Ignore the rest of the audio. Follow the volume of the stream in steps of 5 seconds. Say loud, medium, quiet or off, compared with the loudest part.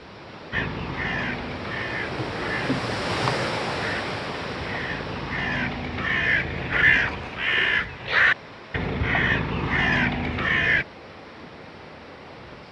loud, medium, quiet.